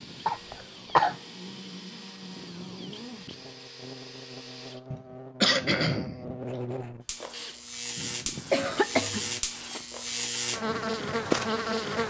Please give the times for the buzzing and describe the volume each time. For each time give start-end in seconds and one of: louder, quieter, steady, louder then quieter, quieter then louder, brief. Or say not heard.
0.2-12.0 louder.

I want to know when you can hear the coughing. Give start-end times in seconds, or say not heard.
0.2-1.1, 4.9-6.2, 8.5-9.7.